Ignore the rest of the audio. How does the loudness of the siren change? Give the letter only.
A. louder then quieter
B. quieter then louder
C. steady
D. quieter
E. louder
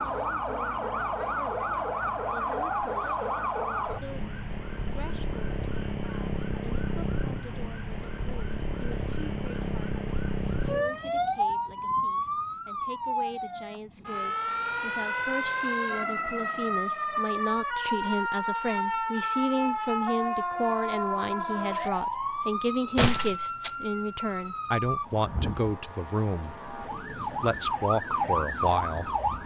C.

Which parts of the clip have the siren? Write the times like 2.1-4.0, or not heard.
0.0-29.4.